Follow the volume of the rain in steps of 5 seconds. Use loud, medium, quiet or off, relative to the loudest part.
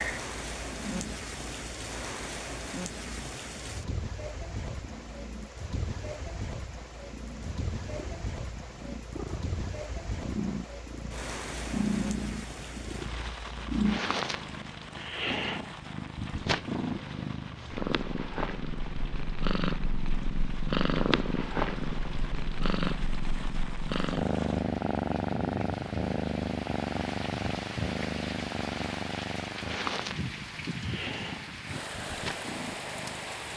loud, loud, loud, medium, medium, loud, loud.